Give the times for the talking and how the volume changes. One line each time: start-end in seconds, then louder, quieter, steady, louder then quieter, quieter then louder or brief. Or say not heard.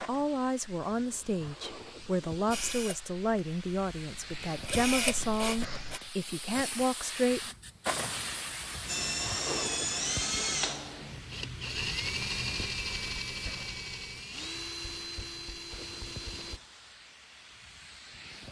0.0-7.5 steady.